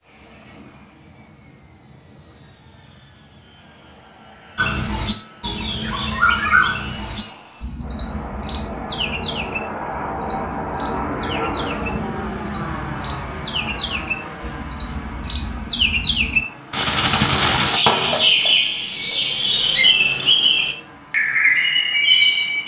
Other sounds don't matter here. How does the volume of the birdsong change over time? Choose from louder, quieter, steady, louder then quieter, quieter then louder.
quieter then louder.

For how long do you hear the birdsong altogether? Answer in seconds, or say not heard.
18 s.